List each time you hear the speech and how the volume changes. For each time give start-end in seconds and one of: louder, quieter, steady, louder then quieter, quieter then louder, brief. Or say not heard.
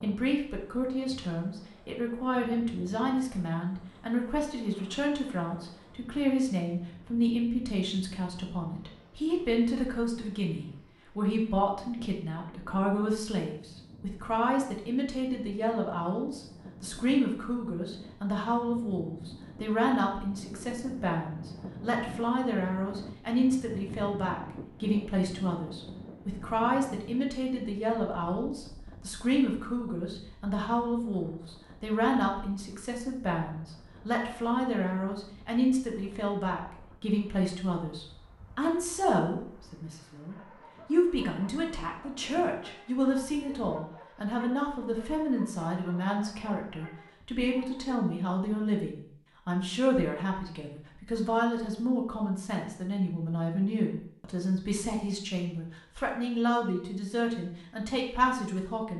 0.0-58.9 steady.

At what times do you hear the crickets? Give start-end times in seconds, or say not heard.
not heard.